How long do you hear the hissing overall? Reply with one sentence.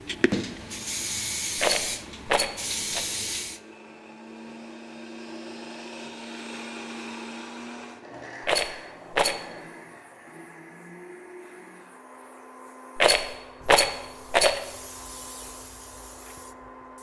The hissing can be heard for 12 seconds in total.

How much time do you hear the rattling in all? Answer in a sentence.
The rattling can be heard for 4 seconds in total.